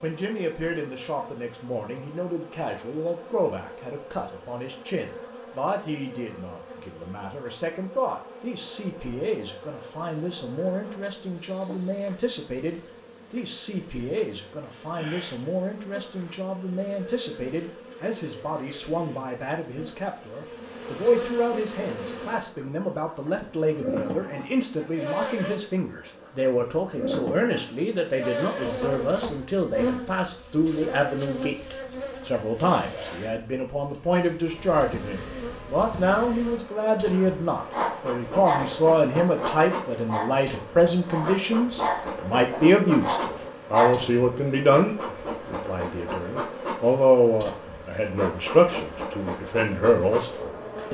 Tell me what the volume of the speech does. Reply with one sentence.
The volume of the speech goes up.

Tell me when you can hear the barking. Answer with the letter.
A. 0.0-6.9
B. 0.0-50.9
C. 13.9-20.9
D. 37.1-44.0
D.